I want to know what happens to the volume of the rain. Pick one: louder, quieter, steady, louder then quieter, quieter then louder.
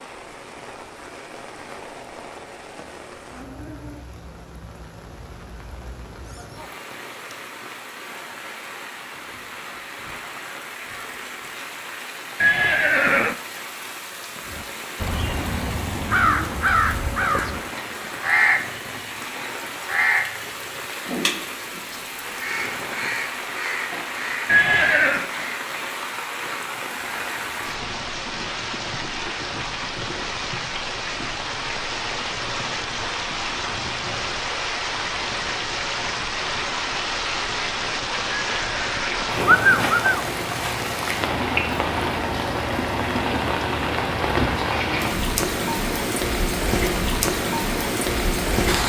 louder.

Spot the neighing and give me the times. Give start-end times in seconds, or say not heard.
12.4-13.3, 24.4-25.3, 38.5-40.2.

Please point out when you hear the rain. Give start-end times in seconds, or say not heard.
0.0-48.8.